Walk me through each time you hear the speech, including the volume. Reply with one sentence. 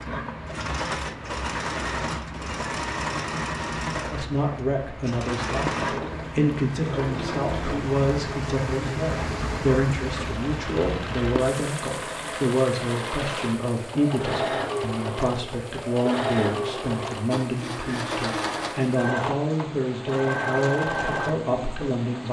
You can hear the speech from 4.1 to 22.2 s, at a steady volume.